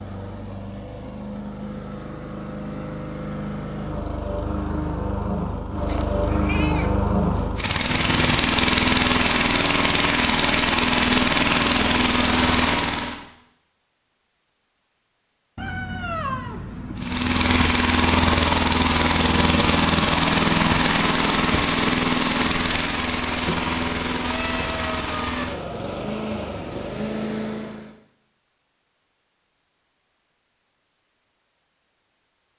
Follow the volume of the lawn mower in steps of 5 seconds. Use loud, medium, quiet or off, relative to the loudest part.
quiet, loud, loud, loud, loud, medium, off.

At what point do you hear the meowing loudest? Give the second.
16 s.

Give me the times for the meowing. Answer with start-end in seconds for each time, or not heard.
5.8-7.5, 15.6-17.4, 23.4-25.4.